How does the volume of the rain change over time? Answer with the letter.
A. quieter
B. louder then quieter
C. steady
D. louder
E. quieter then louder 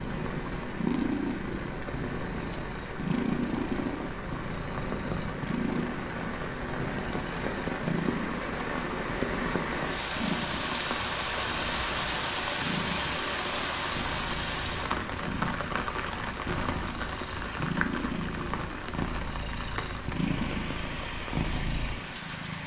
B.